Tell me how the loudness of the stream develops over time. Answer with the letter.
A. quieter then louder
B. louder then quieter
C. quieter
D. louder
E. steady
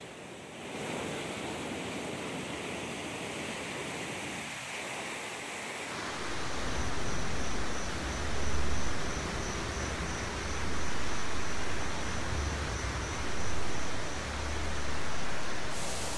E.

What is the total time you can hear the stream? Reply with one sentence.
The stream can be heard for 16 seconds in total.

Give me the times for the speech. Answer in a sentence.
The speech can't be heard in this clip.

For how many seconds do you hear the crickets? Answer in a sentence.
The crickets can be heard for 10 seconds in total.